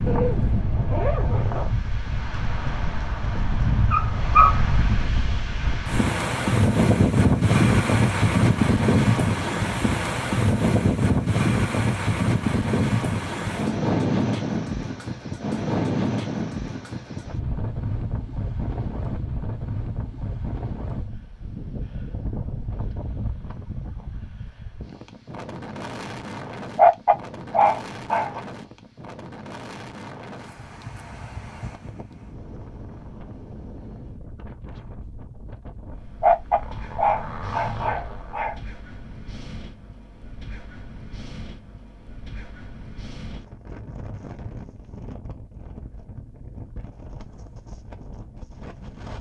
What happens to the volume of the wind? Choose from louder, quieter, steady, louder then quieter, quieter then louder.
quieter.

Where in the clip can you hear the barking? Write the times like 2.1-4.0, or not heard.
2.6-4.6, 26.8-28.4, 36.2-38.5.